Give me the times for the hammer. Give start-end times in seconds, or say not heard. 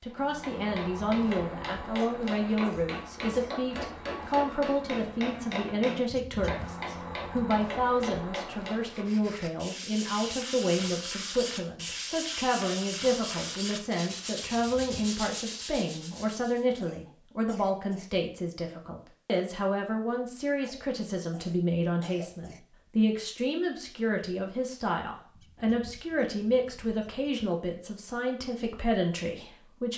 0.1-9.1.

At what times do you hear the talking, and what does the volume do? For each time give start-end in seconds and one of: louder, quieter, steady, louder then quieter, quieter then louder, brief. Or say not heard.
0.0-29.9 steady.